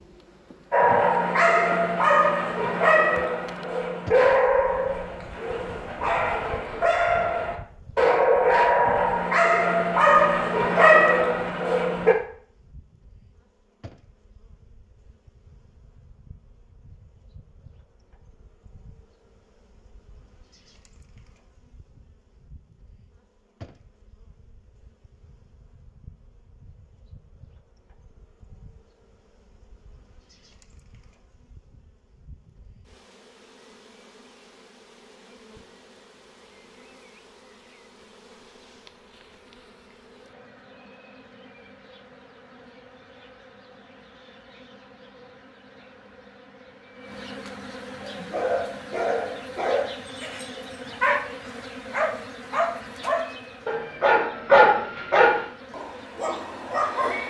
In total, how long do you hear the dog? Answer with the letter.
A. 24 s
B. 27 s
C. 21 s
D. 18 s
C.